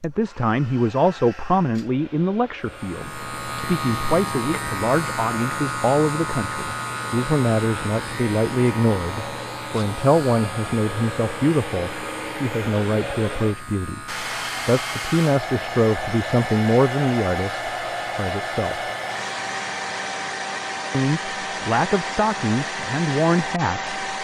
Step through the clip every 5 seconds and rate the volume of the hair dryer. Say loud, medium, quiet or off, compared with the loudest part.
quiet, medium, loud, loud, loud.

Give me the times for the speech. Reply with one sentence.
The speech can be heard from 0.0 to 18.8 s and from 20.9 to 23.9 s.